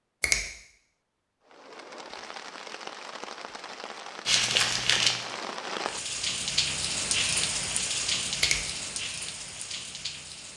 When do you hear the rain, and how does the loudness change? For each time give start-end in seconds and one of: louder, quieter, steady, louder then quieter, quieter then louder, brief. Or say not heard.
1.4-10.5 louder then quieter.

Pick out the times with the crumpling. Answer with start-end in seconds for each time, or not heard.
4.2-5.2.